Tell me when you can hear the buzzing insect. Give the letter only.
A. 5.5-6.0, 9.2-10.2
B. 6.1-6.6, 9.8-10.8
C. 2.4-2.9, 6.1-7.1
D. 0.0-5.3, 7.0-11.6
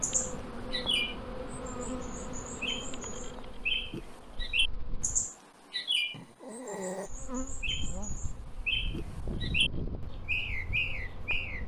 D.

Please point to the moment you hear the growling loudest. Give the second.
7 s.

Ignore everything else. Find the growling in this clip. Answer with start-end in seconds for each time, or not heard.
2.4-2.9, 6.1-7.1.